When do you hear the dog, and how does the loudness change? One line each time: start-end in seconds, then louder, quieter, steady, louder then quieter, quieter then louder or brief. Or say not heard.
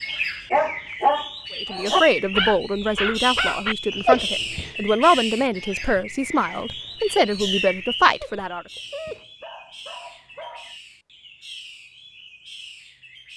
0.5-10.8 quieter then louder.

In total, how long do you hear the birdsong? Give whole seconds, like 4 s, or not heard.
13 s.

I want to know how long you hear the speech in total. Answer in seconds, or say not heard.
7 s.